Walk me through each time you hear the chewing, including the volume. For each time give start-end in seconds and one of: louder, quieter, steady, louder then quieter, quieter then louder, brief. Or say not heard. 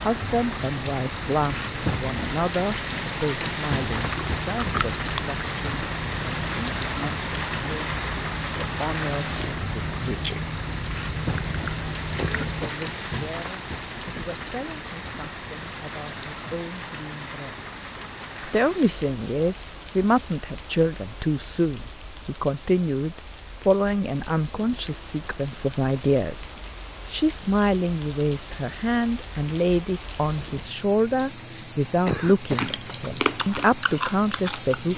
3.9-12.7 steady
32.5-34.9 brief.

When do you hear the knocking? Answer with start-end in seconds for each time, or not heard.
not heard.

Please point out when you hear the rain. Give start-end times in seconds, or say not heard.
0.0-34.9.